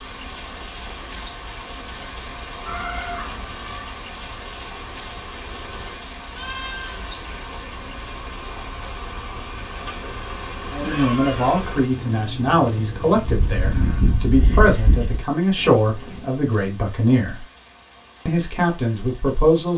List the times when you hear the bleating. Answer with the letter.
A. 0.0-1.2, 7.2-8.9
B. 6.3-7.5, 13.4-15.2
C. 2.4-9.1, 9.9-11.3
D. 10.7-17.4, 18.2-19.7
B.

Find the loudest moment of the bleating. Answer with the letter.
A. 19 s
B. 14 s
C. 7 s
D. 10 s
B.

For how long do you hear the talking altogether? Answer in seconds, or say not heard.
8 s.